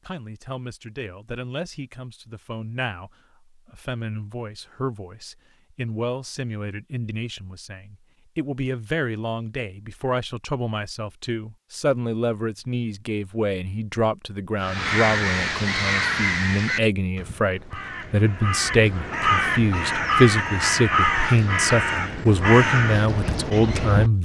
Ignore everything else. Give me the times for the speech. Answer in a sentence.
You can hear the speech from 0.1 to 24.2 s.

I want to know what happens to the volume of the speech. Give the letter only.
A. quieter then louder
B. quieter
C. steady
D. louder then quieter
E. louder
E.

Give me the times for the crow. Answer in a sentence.
You can hear the crow from 14.6 to 24.1 s.